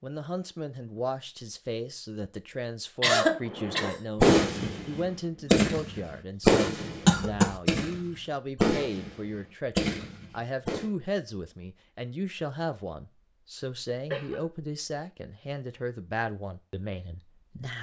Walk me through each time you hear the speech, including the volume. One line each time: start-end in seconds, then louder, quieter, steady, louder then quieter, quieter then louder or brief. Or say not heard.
0.0-17.7 steady.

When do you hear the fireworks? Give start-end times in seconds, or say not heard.
3.5-10.8.